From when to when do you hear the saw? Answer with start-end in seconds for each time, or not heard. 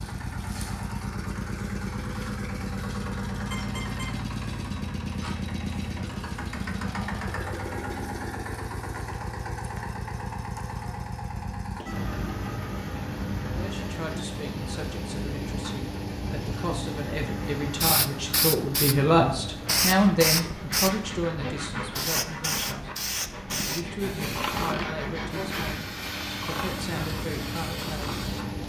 19.6-25.8.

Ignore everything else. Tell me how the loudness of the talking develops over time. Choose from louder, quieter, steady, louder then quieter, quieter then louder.
louder then quieter.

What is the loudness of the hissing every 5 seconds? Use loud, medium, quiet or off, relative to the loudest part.
off, off, off, loud, loud, medium.